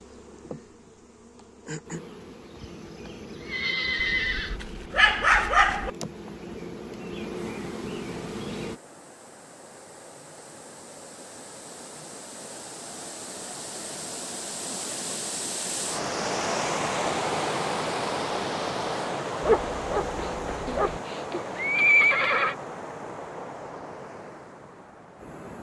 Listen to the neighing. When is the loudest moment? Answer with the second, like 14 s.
22 s.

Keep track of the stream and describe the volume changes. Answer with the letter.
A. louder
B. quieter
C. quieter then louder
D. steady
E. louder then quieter
E.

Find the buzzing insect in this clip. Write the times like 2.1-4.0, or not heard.
0.0-8.8.